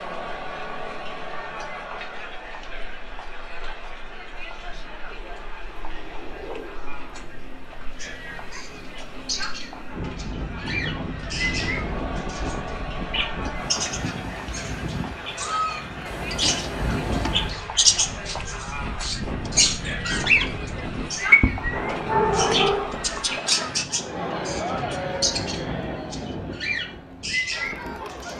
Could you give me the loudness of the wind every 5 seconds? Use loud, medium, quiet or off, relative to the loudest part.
quiet, medium, loud, loud, loud, loud.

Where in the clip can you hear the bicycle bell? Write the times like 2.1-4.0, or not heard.
not heard.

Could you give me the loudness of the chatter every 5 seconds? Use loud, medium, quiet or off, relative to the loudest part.
loud, medium, loud, loud, loud, loud.